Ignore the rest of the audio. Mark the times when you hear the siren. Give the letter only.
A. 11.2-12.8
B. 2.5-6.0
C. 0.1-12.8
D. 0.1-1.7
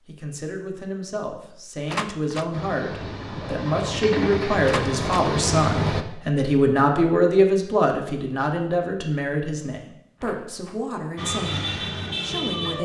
A.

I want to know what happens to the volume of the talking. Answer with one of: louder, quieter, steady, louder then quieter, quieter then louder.
louder then quieter.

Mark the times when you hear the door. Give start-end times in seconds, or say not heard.
1.9-2.5, 4.7-5.3, 10.2-10.8.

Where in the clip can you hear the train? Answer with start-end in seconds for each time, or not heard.
2.5-6.0.